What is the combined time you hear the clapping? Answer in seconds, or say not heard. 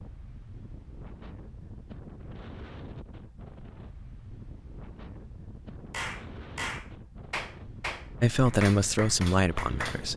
4 s.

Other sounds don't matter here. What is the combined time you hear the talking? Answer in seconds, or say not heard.
2 s.